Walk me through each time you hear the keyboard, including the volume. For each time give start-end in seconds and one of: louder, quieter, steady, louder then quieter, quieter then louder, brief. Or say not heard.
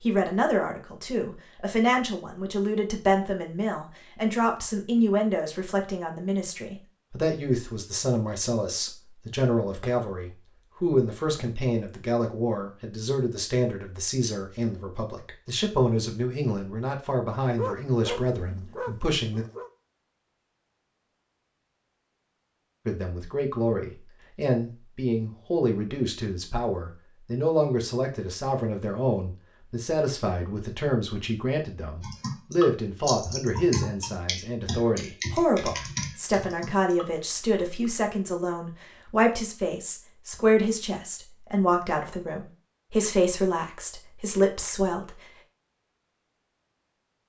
32.0-38.0 quieter.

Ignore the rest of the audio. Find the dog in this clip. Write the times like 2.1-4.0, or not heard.
17.4-19.7.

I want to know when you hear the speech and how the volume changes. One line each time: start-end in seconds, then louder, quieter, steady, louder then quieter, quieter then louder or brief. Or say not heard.
0.0-19.4 steady
22.9-45.2 steady.